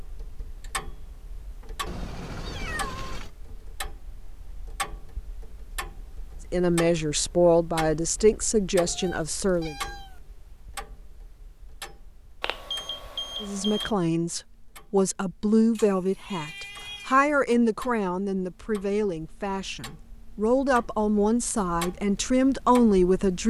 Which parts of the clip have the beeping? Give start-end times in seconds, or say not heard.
12.4-13.9.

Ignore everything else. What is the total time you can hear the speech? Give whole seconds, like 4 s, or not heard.
13 s.